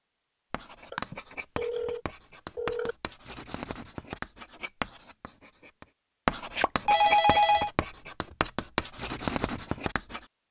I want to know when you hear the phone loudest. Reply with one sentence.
The volume of the phone peaks at 7 seconds.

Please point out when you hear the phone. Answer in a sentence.
The phone can be heard from 0.9 to 3.0 s and from 6.5 to 7.7 s.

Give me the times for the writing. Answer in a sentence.
The writing can be heard from 0.5 to 10.3 s.